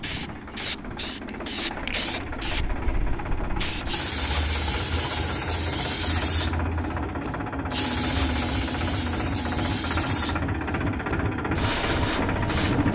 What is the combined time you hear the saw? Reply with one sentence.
You can't hear the saw here.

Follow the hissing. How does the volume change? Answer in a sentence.
The volume of the hissing stays about the same.